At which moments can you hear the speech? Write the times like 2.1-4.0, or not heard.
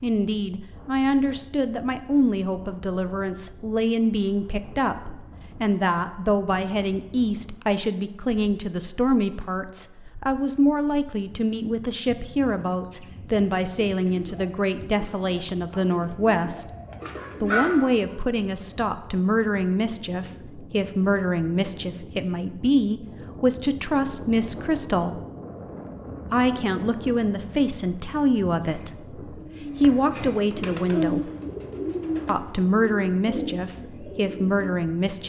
0.0-16.6, 17.4-25.2, 26.3-31.3, 32.2-35.2.